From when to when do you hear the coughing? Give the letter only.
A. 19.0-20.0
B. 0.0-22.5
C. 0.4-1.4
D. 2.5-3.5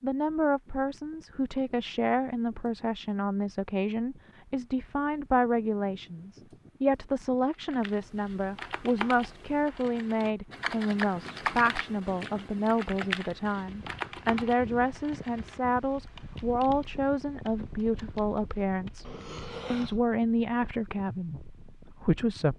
A.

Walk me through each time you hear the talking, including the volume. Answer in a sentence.
You can hear the talking from 0.0 to 22.5 s, at a steady volume.